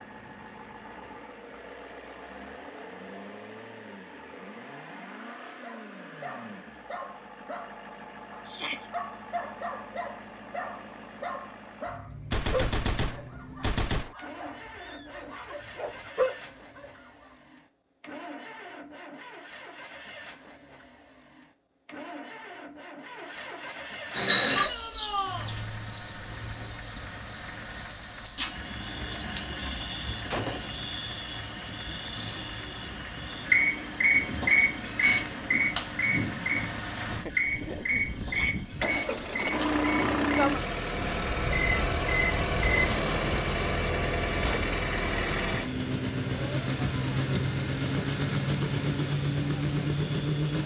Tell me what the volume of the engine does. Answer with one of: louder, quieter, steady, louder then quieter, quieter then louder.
louder.